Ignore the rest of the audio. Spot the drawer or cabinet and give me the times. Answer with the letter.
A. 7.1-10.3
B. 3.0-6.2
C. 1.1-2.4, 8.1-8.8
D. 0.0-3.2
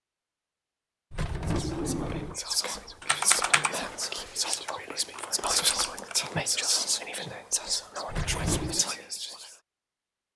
C.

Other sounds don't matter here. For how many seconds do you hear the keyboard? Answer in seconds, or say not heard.
3 s.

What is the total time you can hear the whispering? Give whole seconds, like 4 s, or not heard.
8 s.